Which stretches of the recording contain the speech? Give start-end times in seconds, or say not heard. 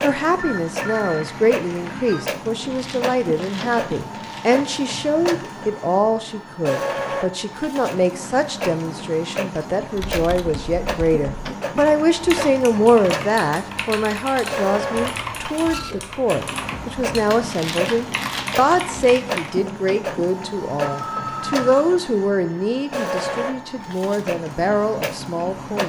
0.0-25.8.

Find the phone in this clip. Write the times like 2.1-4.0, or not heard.
0.3-2.2, 20.8-21.6.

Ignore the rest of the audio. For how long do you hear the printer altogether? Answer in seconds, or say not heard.
26 s.